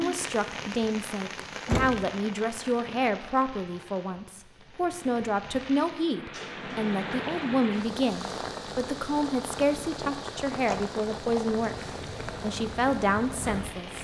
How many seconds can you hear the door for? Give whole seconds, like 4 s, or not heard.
3 s.